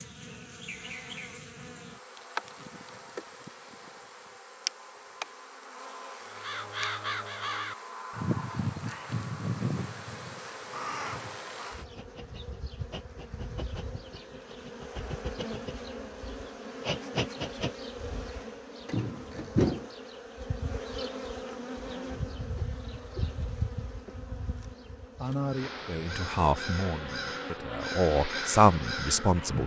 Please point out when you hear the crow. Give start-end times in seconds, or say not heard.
6.2-11.8, 25.4-29.6.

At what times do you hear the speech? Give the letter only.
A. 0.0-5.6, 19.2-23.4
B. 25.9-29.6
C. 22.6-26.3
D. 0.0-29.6
B.